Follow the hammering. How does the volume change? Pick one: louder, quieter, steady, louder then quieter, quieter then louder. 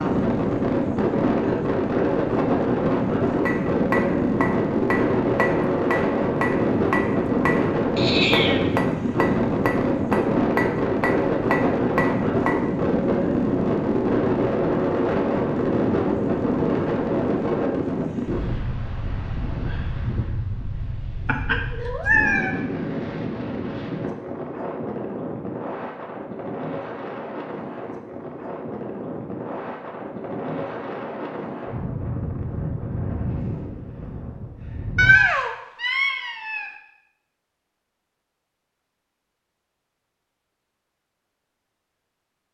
steady.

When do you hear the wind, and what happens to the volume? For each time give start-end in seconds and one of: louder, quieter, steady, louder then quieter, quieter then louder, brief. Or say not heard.
0.0-35.1 quieter.